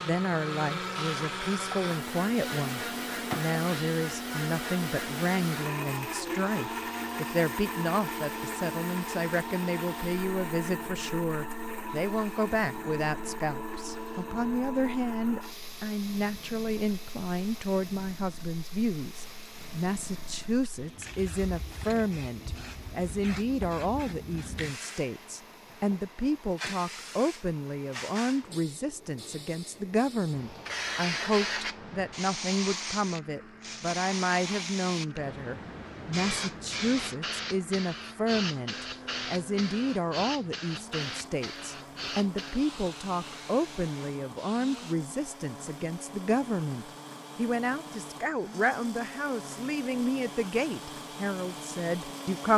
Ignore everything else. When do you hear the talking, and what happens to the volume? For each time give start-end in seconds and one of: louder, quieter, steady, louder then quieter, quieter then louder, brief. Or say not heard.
0.0-52.5 steady.